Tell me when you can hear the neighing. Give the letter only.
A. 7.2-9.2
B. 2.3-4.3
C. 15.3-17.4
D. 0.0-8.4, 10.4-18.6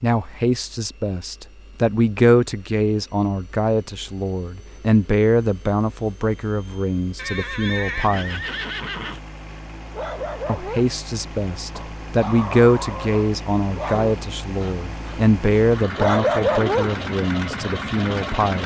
A.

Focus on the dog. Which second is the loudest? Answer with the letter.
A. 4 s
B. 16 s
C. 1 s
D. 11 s
B.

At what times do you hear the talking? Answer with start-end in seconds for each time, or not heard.
0.0-8.4, 10.4-18.6.